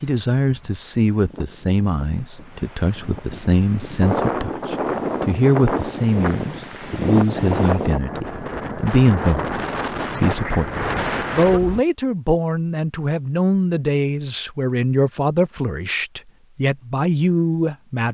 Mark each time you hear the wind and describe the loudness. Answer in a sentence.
The wind can be heard from 0.0 to 11.8 s, getting louder.